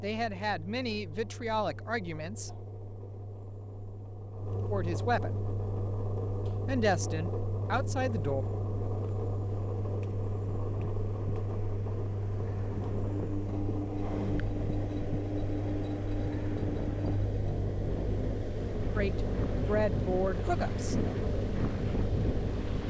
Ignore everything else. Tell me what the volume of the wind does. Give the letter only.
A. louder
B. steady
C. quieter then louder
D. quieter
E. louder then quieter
A.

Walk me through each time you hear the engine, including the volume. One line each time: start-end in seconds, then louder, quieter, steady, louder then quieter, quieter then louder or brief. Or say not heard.
0.0-22.8 louder.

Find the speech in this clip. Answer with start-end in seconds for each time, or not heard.
0.0-2.5, 4.7-5.3, 6.7-8.4, 18.9-20.9.